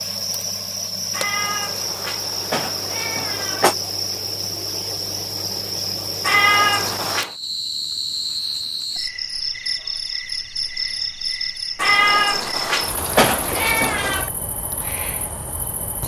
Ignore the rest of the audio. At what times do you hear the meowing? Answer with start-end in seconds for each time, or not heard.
1.1-3.8, 6.2-7.3, 11.8-14.3.